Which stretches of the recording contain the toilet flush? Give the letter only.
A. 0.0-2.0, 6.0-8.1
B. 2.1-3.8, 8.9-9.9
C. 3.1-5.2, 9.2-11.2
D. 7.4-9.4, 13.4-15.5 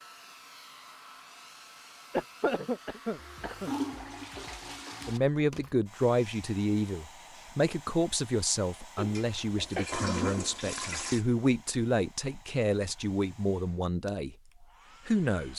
C.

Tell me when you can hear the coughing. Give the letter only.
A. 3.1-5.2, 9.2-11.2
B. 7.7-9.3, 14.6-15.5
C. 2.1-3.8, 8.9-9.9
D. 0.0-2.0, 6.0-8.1
C.